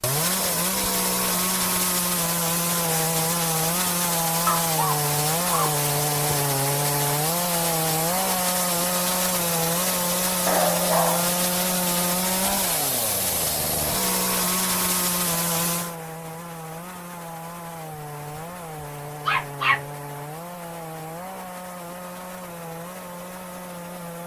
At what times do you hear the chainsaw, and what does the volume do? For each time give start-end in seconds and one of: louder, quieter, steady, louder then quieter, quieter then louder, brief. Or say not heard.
0.0-24.2 quieter.